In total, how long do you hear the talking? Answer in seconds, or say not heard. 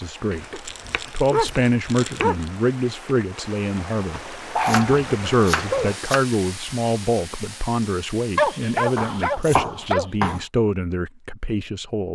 12 s.